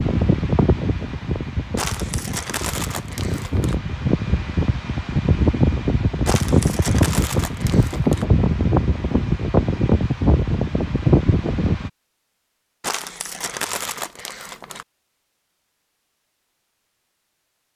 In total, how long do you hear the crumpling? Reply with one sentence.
You can hear the crumpling for 6 seconds altogether.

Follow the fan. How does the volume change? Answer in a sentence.
The loudness of the fan goes up.